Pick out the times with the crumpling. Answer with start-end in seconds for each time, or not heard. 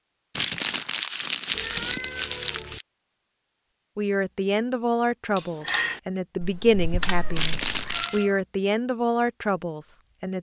0.3-2.9, 7.3-8.2.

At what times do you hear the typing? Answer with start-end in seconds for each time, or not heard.
5.3-8.1.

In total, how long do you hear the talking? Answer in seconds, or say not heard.
6 s.